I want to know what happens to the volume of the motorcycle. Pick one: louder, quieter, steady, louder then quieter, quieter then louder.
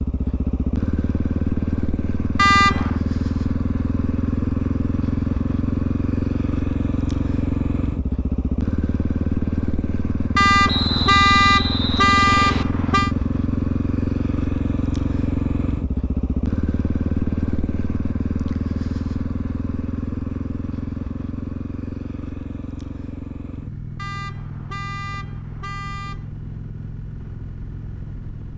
quieter.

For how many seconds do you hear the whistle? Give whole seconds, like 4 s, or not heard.
2 s.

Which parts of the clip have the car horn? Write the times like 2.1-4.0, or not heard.
2.4-3.0, 10.3-13.1, 23.9-26.3.